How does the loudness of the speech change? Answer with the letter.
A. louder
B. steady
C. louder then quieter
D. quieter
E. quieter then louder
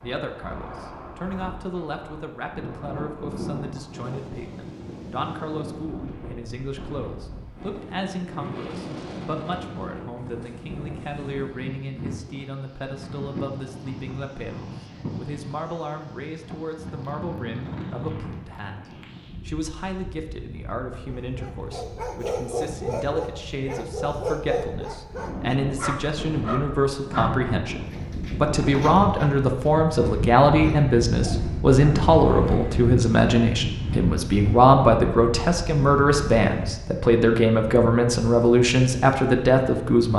A.